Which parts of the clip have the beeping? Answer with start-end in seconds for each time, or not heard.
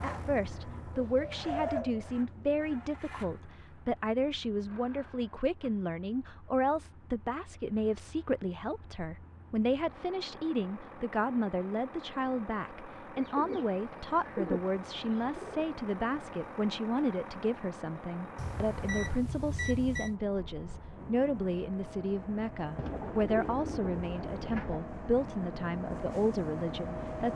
18.4-20.1.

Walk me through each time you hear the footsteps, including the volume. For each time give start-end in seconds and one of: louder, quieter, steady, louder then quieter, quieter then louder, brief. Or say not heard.
not heard.